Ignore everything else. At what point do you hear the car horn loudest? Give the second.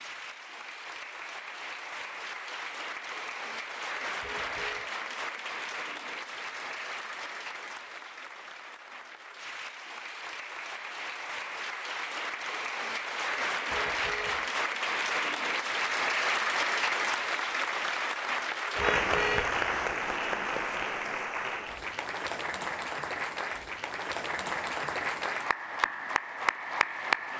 19 s.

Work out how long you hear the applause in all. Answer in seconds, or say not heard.
27 s.